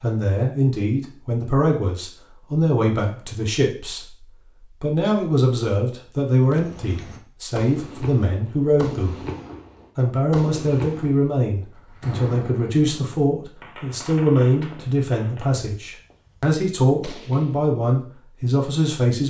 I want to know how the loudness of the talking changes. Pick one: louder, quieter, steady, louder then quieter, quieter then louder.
steady.